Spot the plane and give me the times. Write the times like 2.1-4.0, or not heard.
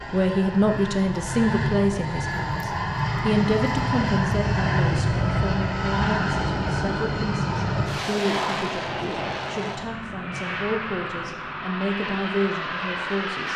0.0-13.5.